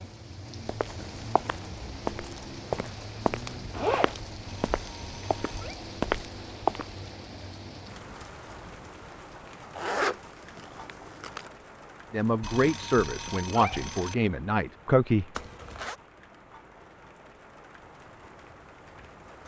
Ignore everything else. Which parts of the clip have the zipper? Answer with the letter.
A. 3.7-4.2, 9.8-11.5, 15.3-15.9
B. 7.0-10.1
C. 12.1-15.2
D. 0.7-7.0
A.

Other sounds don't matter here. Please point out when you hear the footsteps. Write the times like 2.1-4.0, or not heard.
0.7-7.0.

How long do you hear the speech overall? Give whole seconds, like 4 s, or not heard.
3 s.